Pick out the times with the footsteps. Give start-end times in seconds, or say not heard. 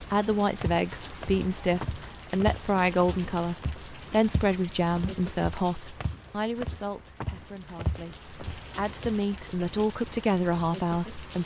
0.6-9.2.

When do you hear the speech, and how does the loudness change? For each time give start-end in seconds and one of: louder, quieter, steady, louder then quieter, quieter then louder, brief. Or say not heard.
0.0-11.4 quieter then louder.